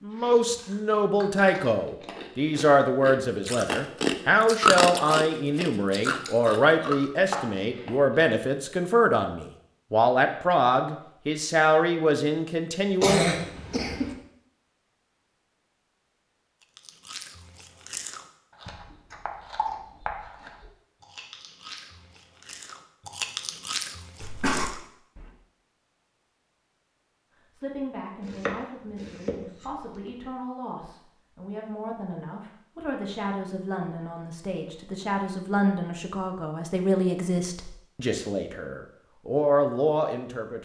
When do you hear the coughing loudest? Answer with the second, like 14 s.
13 s.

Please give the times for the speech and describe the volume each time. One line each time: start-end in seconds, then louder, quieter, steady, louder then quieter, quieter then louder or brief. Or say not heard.
0.0-13.2 steady
27.5-40.5 louder.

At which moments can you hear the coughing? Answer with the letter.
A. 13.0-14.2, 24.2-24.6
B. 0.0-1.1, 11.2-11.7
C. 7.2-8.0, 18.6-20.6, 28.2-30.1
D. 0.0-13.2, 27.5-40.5
A.